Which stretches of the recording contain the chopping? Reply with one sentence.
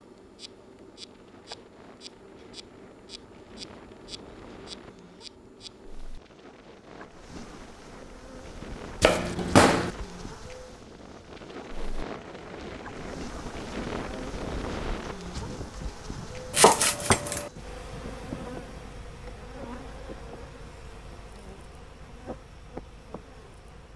You can hear the chopping from 9.0 to 9.9 s and from 16.5 to 17.5 s.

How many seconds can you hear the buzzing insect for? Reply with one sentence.
You can hear the buzzing insect for 24 seconds altogether.